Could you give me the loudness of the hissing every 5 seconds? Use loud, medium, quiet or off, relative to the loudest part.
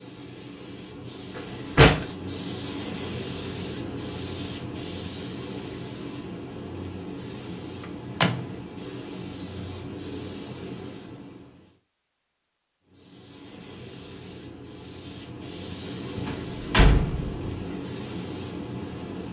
loud, loud, medium, loud.